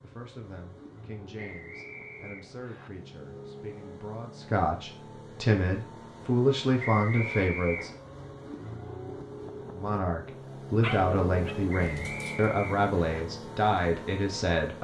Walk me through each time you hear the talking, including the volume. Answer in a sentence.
You can hear the talking from 0.0 to 7.9 s, getting louder; and from 9.8 to 14.8 s, at a steady volume.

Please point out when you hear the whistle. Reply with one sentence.
You can hear the whistle from 1.4 to 2.9 s, from 6.8 to 8.0 s and from 11.7 to 13.2 s.